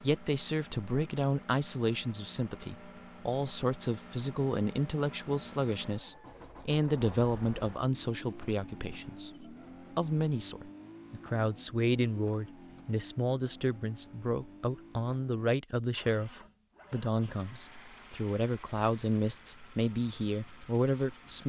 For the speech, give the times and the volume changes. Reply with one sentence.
The speech can be heard from 0.0 to 21.4 s, at a steady volume.